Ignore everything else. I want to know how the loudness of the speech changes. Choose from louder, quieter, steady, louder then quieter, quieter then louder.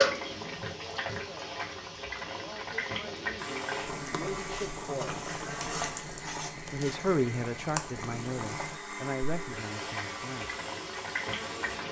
louder then quieter.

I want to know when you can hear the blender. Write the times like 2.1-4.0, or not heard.
3.4-11.8.